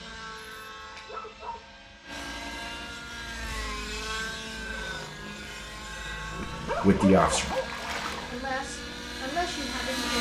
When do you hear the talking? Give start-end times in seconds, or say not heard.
6.7-7.5, 8.3-10.1.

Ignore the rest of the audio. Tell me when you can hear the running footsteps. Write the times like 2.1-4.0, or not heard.
not heard.